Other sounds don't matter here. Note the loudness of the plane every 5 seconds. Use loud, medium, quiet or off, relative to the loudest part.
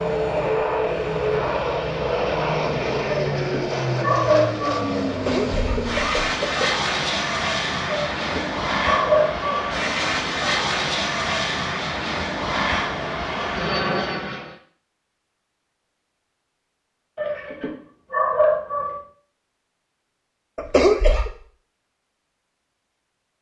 loud, loud, loud, off, off.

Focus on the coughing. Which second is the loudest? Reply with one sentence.
The loudest moment of the coughing is at 21 seconds.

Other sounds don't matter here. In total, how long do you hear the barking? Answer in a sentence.
You can hear the barking for 5 seconds altogether.